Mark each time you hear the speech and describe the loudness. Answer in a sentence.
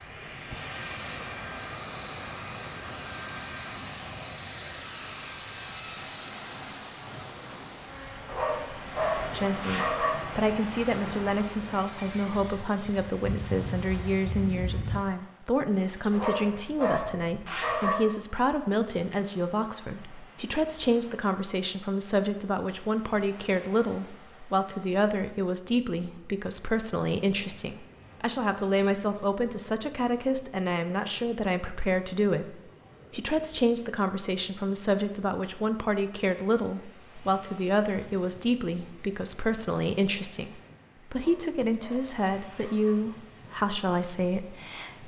You can hear the speech from 9.3 to 45.0 s, at a steady volume.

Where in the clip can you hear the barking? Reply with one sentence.
You can hear the barking from 8.2 to 10.1 s, from 16.1 to 17.9 s and from 41.1 to 43.0 s.